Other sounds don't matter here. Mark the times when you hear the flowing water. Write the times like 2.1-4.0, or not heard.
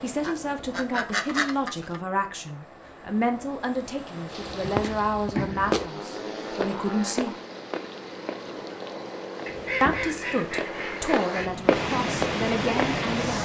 4.2-13.4.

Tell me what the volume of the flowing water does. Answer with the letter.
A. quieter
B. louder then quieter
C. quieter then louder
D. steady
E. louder
E.